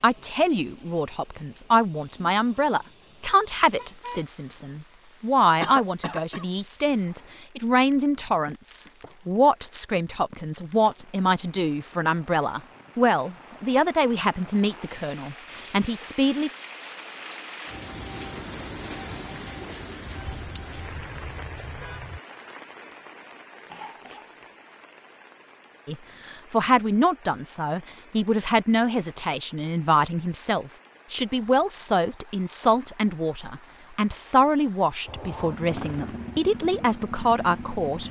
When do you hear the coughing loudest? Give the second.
6 s.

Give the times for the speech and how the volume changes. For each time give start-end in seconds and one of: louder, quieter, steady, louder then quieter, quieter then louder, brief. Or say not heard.
0.0-16.5 steady
25.9-38.0 steady.